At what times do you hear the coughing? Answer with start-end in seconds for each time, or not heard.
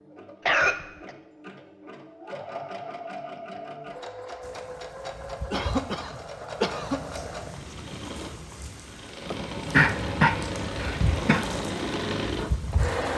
0.5-1.1, 5.5-7.0, 9.3-11.4.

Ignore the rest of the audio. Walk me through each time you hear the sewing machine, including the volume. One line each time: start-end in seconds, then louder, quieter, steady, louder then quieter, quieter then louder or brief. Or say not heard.
0.0-13.1 louder.